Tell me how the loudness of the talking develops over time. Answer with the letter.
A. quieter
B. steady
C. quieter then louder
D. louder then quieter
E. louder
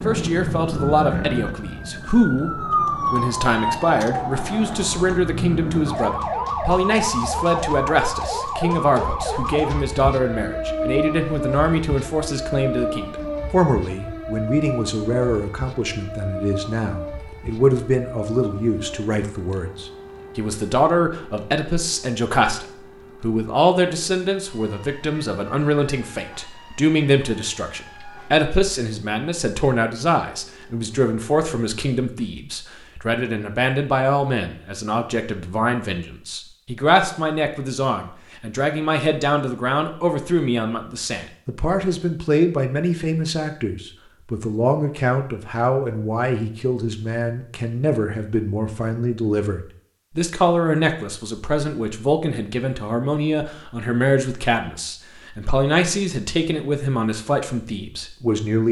B.